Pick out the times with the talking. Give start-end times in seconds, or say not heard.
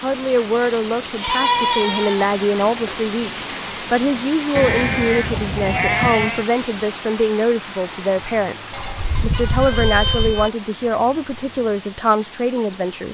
0.0-13.0.